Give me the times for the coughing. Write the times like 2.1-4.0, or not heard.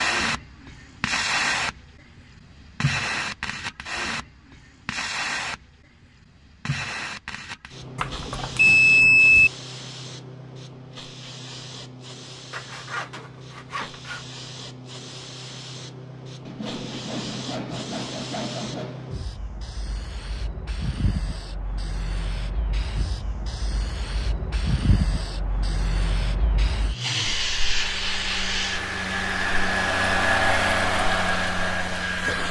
not heard.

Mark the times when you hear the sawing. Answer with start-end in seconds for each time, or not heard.
12.5-14.2, 16.4-19.1.